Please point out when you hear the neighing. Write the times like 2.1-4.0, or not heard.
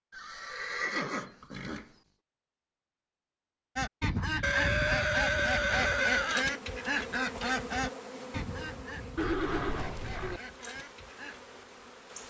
0.1-1.9, 4.4-6.5, 9.2-10.4.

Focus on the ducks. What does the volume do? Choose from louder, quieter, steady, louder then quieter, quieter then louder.
quieter.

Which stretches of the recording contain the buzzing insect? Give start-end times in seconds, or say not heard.
5.8-12.2.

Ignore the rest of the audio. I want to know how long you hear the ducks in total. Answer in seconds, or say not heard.
8 s.